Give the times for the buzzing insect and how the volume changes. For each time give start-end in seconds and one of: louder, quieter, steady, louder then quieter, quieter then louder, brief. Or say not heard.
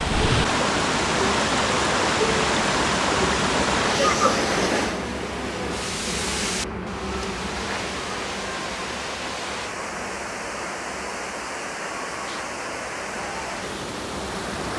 0.0-14.7 quieter.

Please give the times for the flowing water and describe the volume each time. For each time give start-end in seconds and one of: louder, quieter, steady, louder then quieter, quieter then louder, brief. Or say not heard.
0.0-14.7 quieter.